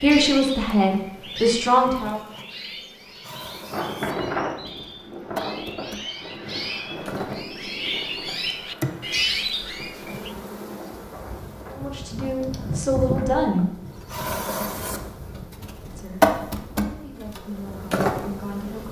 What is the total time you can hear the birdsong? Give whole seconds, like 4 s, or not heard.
10 s.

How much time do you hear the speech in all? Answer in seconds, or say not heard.
7 s.